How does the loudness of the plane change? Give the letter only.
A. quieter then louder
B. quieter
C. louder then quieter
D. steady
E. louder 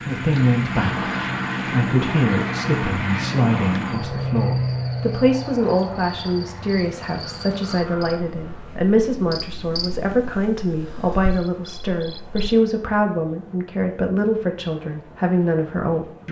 B.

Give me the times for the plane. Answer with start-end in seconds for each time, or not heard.
0.0-16.2.